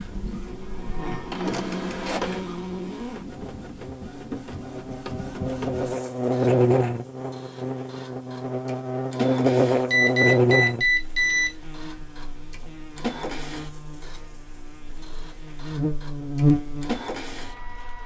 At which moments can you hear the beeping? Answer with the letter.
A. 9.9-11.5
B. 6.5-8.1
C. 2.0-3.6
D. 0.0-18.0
A.